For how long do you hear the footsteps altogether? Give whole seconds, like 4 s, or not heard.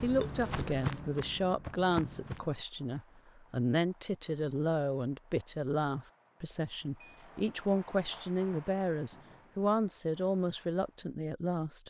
3 s.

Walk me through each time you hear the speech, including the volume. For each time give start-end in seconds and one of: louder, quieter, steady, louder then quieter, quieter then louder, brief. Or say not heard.
0.0-11.8 steady.